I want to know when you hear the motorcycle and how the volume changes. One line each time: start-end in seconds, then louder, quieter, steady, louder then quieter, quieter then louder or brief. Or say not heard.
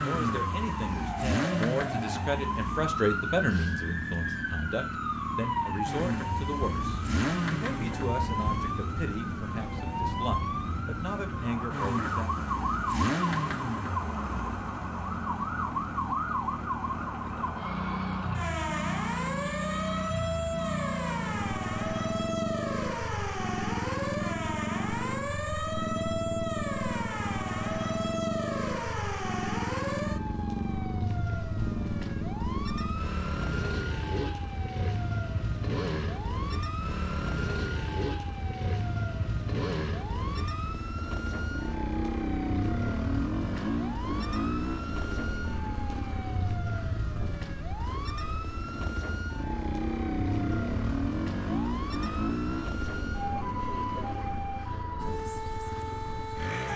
0.0-56.7 steady.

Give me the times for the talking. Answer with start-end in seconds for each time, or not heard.
0.0-12.4.